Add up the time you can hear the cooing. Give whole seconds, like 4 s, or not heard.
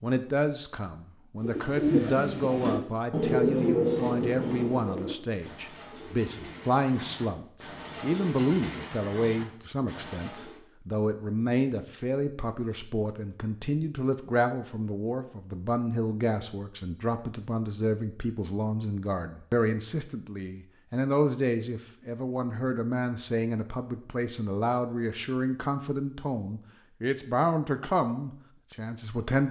9 s.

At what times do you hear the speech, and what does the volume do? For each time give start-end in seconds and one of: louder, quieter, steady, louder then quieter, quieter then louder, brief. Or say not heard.
0.0-29.4 steady.